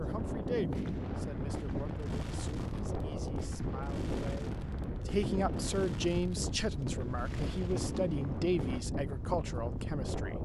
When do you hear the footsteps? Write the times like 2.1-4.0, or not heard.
not heard.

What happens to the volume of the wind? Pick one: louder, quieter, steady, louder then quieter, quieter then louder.
steady.